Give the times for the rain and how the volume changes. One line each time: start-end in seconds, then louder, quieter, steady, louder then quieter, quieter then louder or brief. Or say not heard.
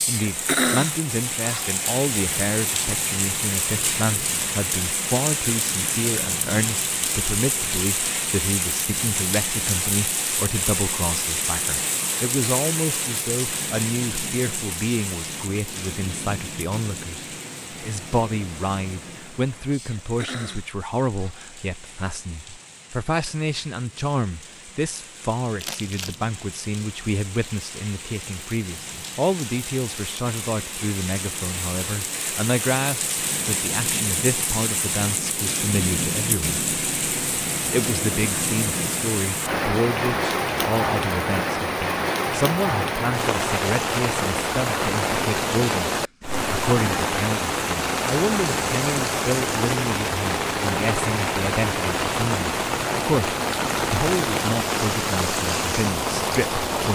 0.0-56.9 quieter then louder.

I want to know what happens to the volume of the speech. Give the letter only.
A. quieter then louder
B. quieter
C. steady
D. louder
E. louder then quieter
C.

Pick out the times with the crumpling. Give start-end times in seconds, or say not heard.
25.6-26.2.